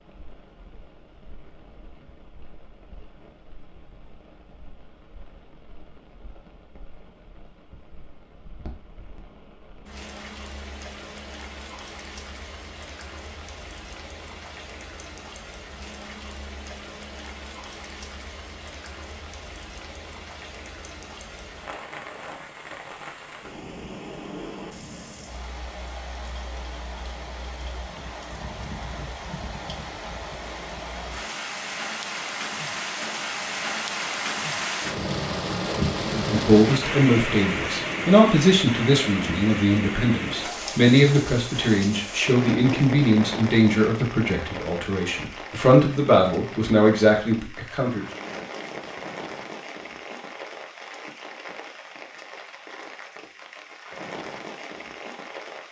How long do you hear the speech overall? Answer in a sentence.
The speech can be heard for 12 seconds in total.